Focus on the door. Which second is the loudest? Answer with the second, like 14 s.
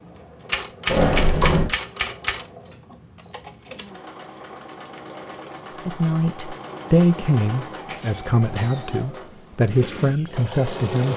1 s.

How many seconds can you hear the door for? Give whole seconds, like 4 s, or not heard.
2 s.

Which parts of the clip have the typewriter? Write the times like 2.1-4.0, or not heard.
0.5-2.5.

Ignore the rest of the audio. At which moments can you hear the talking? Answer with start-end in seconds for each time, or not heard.
5.7-11.1.